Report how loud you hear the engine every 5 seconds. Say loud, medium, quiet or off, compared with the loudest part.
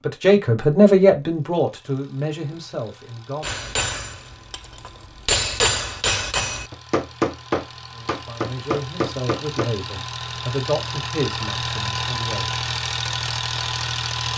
quiet, medium, loud.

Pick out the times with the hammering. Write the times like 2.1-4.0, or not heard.
3.4-9.7.